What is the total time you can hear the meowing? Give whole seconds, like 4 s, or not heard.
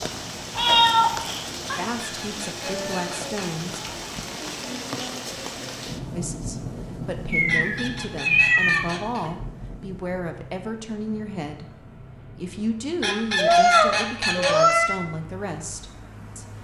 5 s.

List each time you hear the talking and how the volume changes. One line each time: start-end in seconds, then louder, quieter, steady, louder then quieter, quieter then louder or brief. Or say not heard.
1.8-3.8 brief
6.1-16.5 steady.